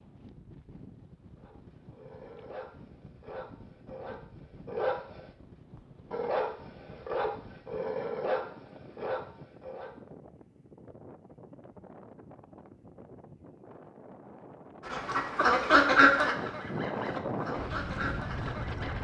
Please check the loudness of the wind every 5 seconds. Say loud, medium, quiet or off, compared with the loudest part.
quiet, quiet, quiet, loud.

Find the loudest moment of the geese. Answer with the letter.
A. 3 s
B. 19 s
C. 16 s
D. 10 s
C.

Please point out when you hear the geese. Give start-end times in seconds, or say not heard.
14.8-19.0.